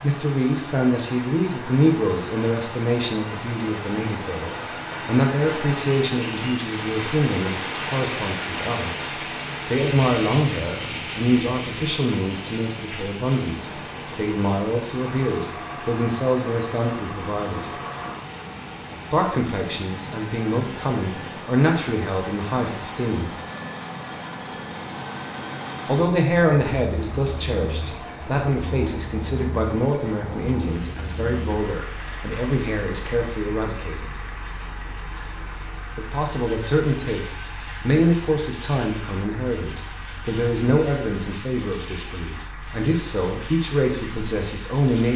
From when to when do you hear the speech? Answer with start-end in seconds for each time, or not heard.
0.0-17.8, 19.1-23.4, 25.9-34.1, 36.0-45.1.